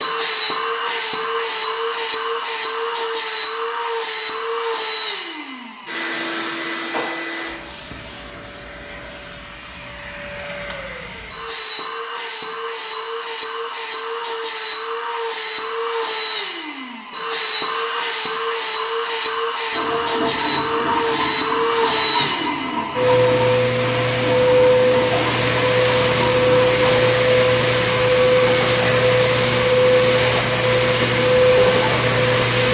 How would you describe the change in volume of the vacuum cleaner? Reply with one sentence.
The volume of the vacuum cleaner goes down, then up.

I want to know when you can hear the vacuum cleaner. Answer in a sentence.
The vacuum cleaner can be heard from 0.0 to 32.7 s.